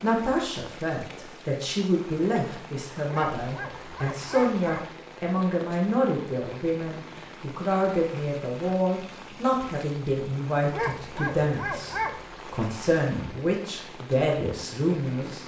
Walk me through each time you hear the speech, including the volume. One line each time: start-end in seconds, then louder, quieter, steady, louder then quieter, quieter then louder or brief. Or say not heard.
0.0-15.4 steady.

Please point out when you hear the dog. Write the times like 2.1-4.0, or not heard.
3.1-4.8, 10.7-12.2.